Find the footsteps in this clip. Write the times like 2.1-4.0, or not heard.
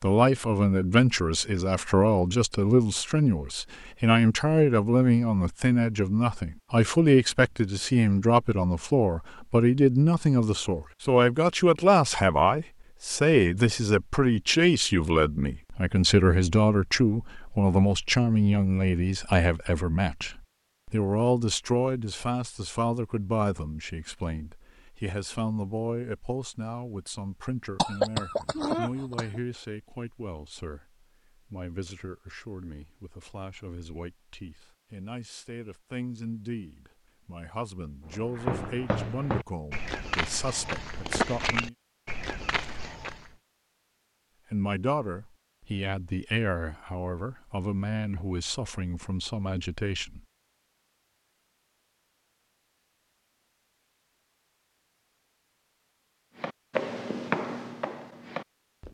38.1-43.3, 56.4-58.8.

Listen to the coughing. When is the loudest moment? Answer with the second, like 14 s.
28 s.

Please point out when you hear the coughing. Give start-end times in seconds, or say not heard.
27.8-29.4.